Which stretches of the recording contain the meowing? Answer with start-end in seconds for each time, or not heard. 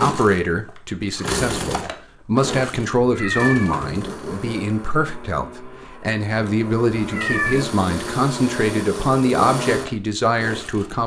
3.0-3.9, 7.0-7.7.